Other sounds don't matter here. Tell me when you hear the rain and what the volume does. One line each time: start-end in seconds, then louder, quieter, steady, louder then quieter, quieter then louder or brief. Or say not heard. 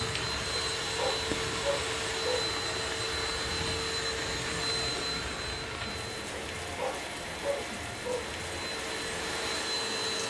0.0-10.2 steady.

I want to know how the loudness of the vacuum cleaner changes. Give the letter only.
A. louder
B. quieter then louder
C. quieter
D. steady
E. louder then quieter
B.